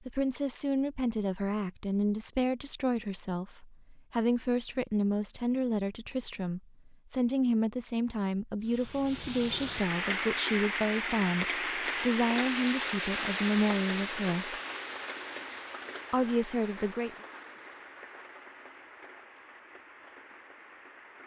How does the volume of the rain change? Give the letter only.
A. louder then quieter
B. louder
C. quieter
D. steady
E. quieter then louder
C.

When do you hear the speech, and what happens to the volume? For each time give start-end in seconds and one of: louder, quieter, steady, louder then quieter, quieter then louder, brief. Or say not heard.
0.1-14.6 steady
16.1-17.1 brief.